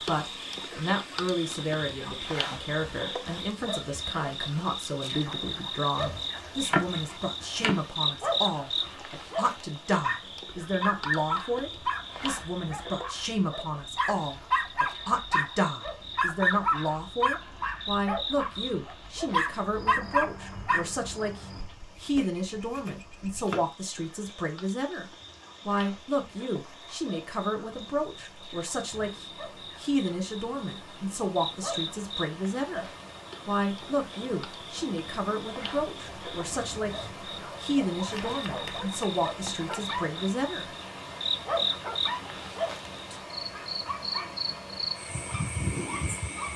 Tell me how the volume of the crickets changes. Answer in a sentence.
The loudness of the crickets goes down, then up.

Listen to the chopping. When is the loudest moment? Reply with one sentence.
The volume of the chopping peaks at 7 seconds.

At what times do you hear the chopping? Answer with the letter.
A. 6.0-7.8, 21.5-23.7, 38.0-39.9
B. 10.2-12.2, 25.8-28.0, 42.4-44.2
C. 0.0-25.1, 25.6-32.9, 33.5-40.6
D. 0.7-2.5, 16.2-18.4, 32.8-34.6
A.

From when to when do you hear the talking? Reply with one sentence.
You can hear the talking from 0.0 to 25.1 s, from 25.6 to 32.9 s and from 33.5 to 40.6 s.